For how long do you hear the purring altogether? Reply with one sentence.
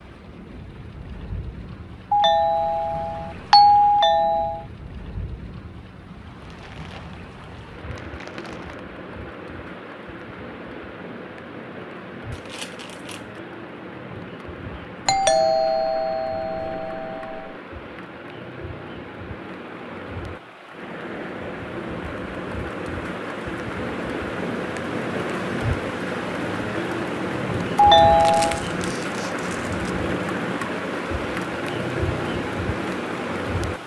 You can't hear the purring here.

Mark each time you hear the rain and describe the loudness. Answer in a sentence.
You can hear the rain from 0.0 to 33.8 s, getting louder.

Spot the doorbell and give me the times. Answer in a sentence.
You can hear the doorbell from 2.1 to 4.7 s, from 15.1 to 17.5 s and from 27.8 to 28.6 s.